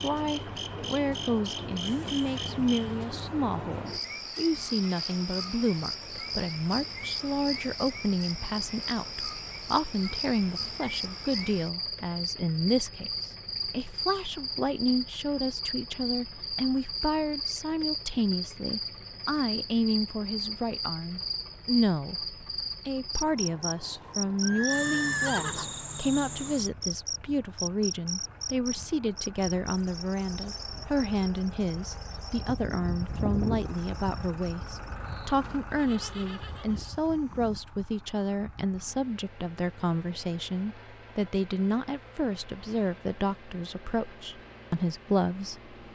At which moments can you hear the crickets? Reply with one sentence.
You can hear the crickets from 0.0 to 35.4 s.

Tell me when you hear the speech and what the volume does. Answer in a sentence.
You can hear the speech from 0.0 to 45.9 s, at a steady volume.